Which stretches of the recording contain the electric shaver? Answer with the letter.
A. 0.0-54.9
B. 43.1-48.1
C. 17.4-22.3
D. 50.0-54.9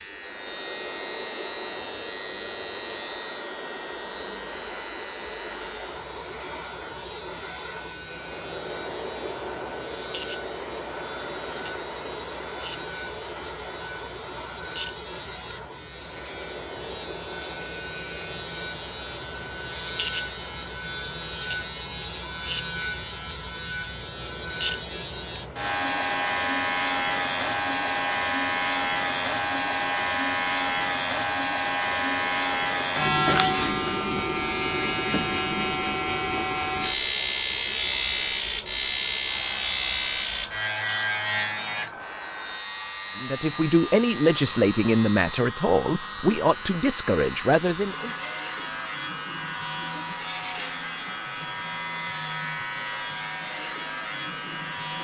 A.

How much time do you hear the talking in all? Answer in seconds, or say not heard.
5 s.